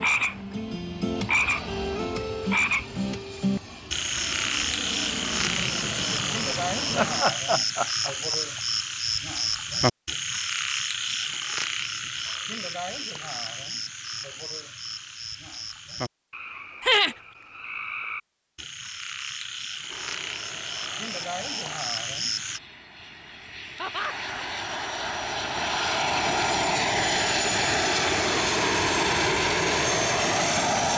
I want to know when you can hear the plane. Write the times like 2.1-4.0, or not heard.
0.0-7.2, 19.9-30.9.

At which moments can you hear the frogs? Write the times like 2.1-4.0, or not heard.
0.0-22.6.